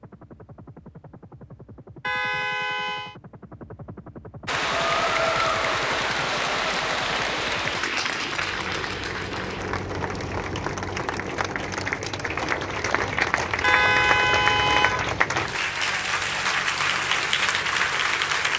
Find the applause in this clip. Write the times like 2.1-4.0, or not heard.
4.5-18.5.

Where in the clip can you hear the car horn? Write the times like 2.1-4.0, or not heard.
2.0-3.1, 13.6-15.1.